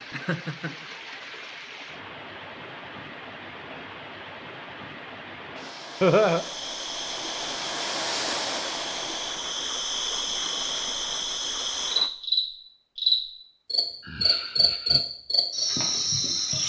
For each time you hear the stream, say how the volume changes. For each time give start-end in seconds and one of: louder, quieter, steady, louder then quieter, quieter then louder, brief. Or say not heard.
0.0-12.1 louder then quieter.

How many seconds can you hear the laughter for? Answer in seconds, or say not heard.
2 s.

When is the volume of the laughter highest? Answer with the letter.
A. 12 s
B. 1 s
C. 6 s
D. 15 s
C.